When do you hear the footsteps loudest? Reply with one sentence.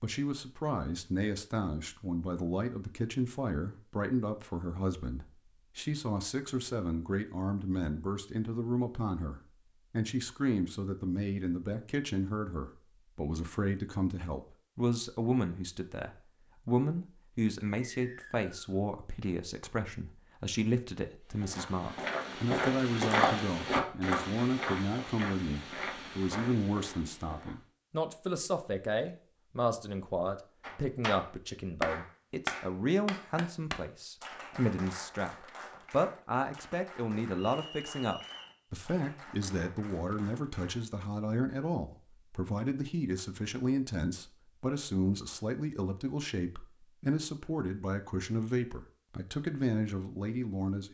The volume of the footsteps peaks at 23 seconds.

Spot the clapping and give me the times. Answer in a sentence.
The clapping can be heard from 30.6 to 40.9 s.